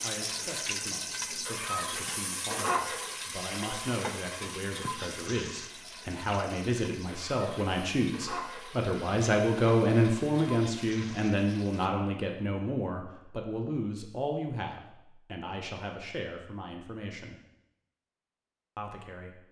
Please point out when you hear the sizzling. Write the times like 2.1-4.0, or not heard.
0.0-11.9.